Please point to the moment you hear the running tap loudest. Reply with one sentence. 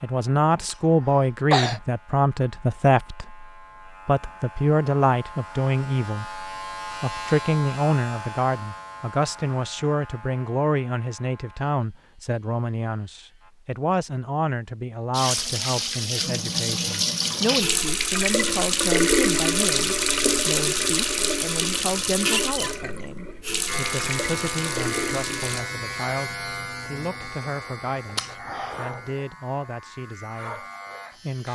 The volume of the running tap peaks at 19 seconds.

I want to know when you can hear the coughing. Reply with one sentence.
The coughing can be heard from 0.7 to 1.8 s and from 28.1 to 28.8 s.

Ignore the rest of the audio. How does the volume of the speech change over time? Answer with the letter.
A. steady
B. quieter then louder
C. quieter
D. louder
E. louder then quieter
C.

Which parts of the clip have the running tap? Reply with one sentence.
You can hear the running tap from 15.1 to 25.6 s.